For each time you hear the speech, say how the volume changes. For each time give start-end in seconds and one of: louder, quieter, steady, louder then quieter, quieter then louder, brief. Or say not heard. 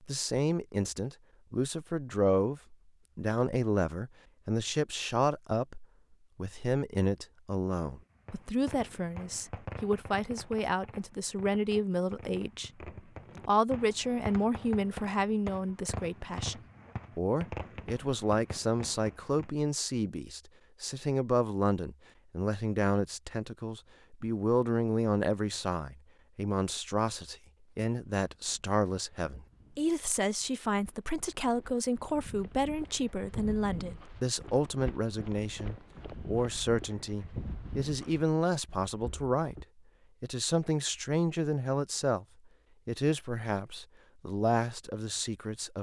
0.1-12.7 steady
13.4-42.2 steady
42.9-45.7 brief.